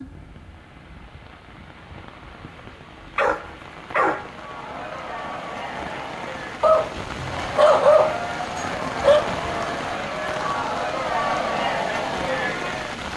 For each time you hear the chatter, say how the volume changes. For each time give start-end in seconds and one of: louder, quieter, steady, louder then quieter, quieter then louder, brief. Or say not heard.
4.3-13.1 louder.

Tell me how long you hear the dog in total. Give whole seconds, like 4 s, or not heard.
4 s.